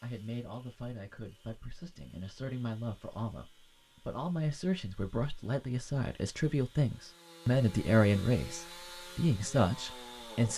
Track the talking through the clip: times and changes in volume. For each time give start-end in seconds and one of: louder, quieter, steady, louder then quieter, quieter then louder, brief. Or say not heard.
0.0-10.5 louder.